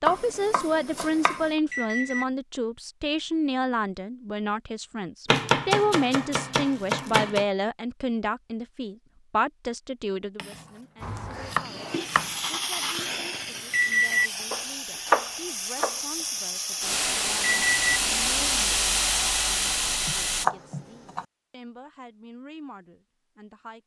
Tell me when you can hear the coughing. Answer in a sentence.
The coughing can't be heard in this clip.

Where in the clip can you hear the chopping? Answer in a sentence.
The chopping can be heard from 0.1 to 1.5 s, from 5.2 to 7.5 s, from 10.3 to 12.3 s, from 14.5 to 16.0 s and from 20.1 to 21.2 s.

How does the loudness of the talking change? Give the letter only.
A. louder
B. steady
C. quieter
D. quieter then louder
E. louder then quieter
C.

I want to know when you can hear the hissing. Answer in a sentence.
The hissing can be heard from 11.0 to 20.4 s.